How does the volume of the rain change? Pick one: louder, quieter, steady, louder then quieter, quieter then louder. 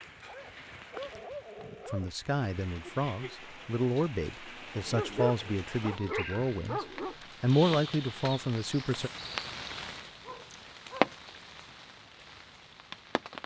louder.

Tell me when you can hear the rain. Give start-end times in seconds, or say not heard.
0.0-13.4.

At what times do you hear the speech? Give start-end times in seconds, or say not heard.
1.9-9.1.